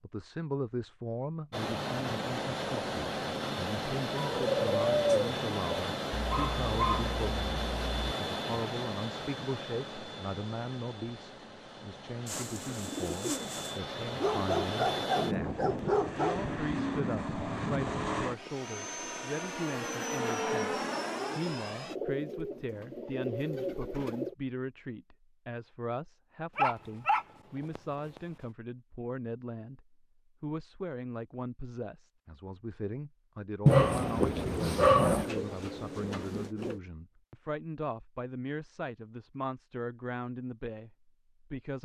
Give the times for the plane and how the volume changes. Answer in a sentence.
The plane can be heard from 1.5 to 21.9 s, getting quieter then louder.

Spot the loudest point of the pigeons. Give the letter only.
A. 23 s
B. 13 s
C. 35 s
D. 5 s
D.